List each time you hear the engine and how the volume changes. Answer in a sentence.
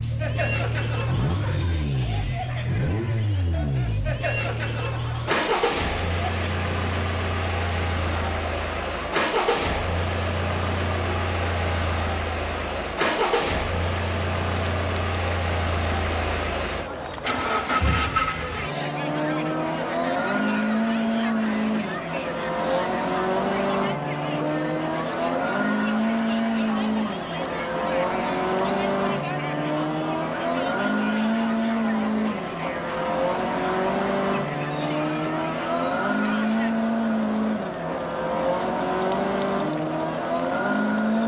The engine can be heard from 0.0 to 41.2 s, at a steady volume.